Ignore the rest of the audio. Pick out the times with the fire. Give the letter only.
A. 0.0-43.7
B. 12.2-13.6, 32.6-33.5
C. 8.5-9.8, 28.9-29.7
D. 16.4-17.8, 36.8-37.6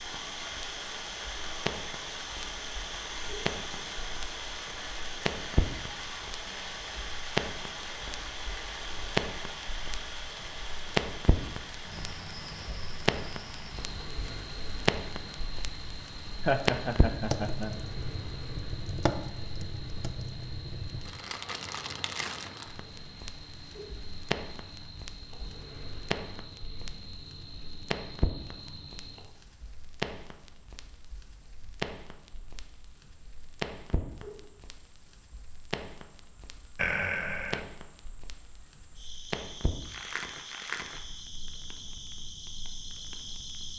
A.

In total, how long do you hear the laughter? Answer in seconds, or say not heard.
2 s.